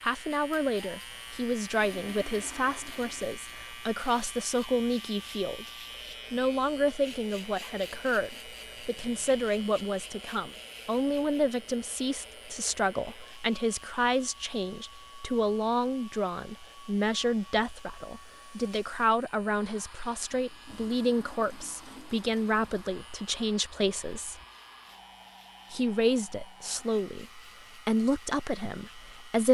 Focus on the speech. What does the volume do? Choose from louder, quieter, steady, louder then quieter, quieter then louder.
steady.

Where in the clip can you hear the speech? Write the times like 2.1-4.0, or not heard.
0.0-5.7, 6.3-24.4, 25.7-29.4.